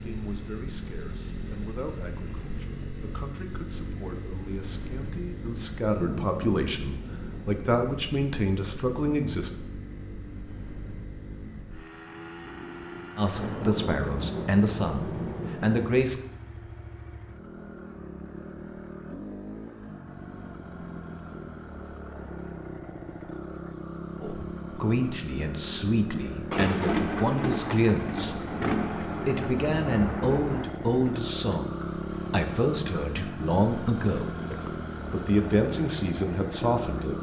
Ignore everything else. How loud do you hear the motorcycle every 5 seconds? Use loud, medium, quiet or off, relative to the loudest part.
medium, medium, medium, medium, medium, loud, loud, loud.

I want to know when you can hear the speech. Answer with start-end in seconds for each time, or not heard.
0.0-9.5, 13.2-16.2, 24.2-37.1.